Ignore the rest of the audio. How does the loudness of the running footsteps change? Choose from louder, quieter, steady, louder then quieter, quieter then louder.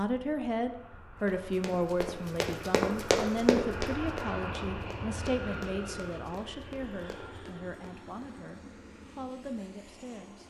louder then quieter.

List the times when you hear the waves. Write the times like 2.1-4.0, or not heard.
not heard.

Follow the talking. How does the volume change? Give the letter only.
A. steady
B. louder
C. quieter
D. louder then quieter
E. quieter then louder
C.